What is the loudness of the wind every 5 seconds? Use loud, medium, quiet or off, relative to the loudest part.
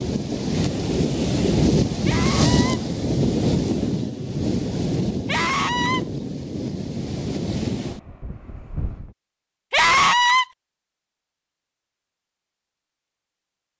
loud, medium, off.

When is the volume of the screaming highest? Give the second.
10 s.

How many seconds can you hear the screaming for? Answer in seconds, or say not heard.
2 s.